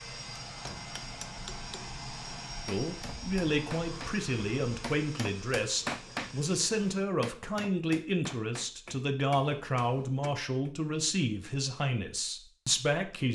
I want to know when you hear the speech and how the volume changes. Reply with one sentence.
The speech can be heard from 2.6 to 13.3 s, at a steady volume.